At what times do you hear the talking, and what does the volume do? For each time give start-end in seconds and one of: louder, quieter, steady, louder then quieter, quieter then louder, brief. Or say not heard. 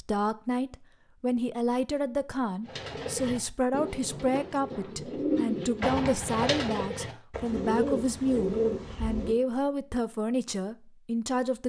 0.0-11.6 steady.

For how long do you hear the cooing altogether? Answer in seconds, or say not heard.
7 s.